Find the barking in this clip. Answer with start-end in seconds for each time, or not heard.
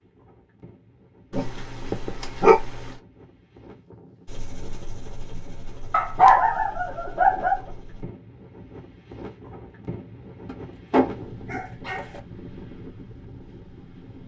1.3-3.0, 5.9-7.6, 10.4-12.2.